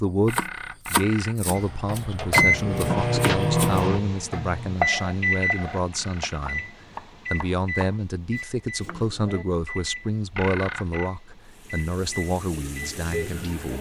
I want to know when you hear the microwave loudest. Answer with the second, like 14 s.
3 s.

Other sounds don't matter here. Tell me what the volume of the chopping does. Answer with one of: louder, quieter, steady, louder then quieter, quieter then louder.
quieter.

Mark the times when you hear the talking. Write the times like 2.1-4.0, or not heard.
0.0-6.7, 7.3-13.7.